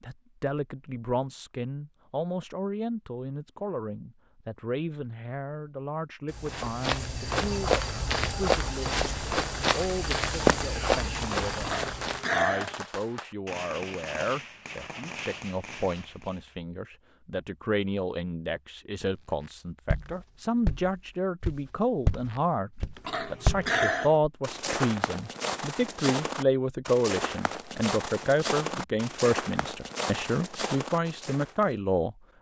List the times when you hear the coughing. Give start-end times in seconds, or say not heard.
11.6-12.8, 23.1-24.2.